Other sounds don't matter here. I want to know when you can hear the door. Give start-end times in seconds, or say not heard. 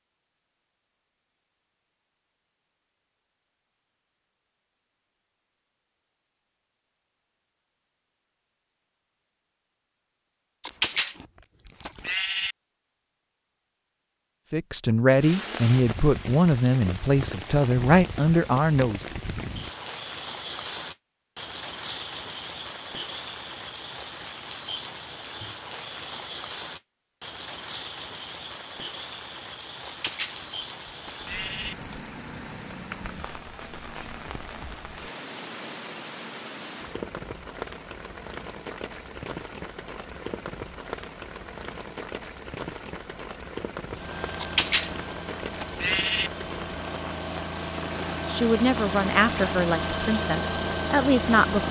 not heard.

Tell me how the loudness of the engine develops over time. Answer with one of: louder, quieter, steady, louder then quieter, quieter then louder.
louder.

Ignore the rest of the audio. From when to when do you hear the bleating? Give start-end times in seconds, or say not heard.
10.6-12.6, 29.9-31.8, 44.4-46.3.